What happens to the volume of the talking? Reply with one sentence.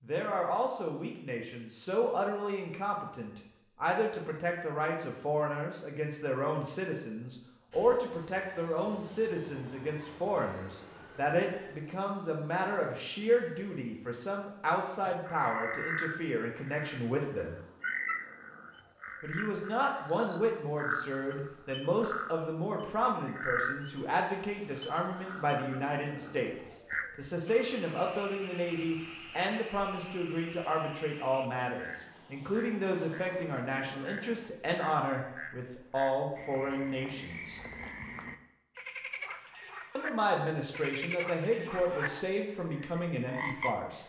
The volume of the talking stays about the same.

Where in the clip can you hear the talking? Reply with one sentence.
You can hear the talking from 0.0 to 17.6 s, from 19.2 to 37.6 s and from 40.0 to 44.0 s.